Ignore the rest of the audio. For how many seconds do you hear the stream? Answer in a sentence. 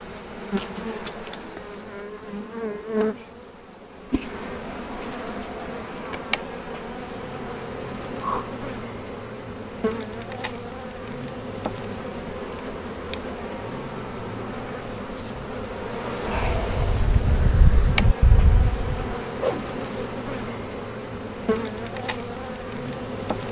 The stream can't be heard in this clip.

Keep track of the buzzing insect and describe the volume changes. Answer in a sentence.
The loudness of the buzzing insect stays about the same.